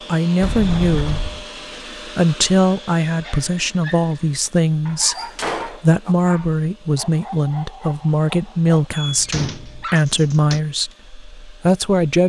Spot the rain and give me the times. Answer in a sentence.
You can't hear the rain here.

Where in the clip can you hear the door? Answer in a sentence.
The door can be heard from 0.4 to 1.4 s, from 5.2 to 6.2 s and from 9.1 to 10.6 s.